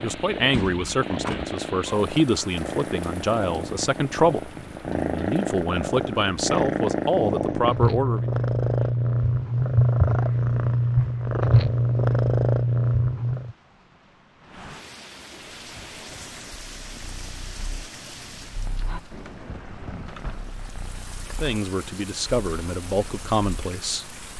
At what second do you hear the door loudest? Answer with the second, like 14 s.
1 s.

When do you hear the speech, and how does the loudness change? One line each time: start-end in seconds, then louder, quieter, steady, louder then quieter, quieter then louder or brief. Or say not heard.
0.0-8.2 steady
21.4-24.1 brief.